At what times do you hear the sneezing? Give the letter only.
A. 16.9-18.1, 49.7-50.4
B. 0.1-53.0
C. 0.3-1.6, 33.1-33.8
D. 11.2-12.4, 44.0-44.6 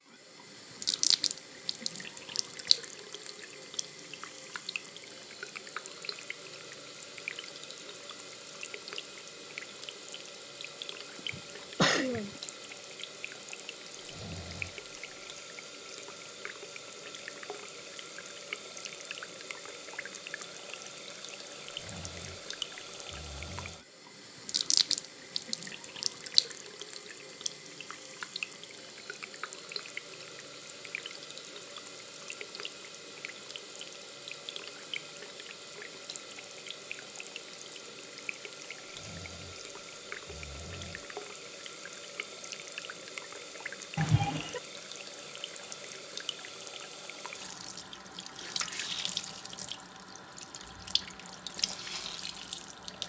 D.